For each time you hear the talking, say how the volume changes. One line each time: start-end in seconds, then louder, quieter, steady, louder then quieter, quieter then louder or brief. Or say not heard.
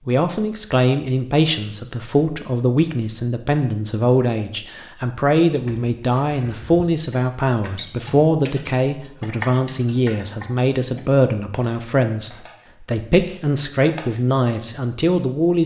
0.1-15.6 steady.